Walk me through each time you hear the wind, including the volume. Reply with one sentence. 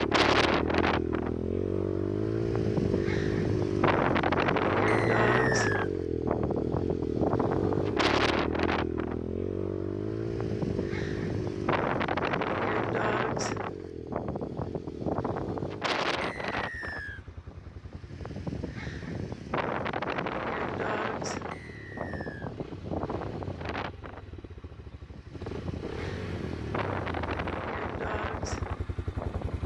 The wind can be heard from 0.0 to 29.6 s, getting quieter.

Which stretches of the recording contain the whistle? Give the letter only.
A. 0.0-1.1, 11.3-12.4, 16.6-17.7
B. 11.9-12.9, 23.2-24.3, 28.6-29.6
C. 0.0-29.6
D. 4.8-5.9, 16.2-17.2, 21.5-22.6
D.